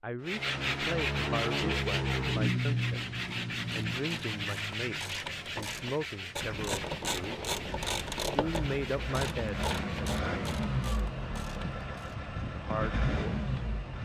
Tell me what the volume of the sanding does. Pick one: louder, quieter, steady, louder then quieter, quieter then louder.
quieter.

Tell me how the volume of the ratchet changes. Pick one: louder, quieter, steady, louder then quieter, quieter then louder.
louder then quieter.